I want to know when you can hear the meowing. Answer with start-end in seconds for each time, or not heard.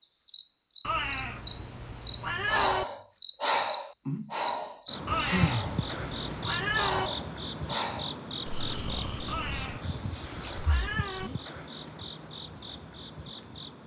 0.8-2.9, 5.0-7.1, 9.2-11.3.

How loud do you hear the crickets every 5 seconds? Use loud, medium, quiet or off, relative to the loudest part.
loud, loud, medium.